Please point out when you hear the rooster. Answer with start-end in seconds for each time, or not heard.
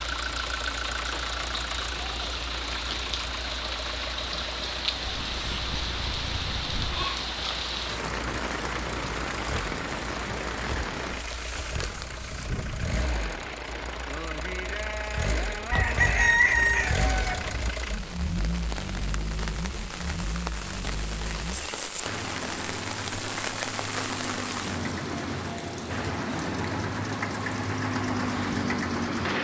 5.0-7.0, 15.7-17.7.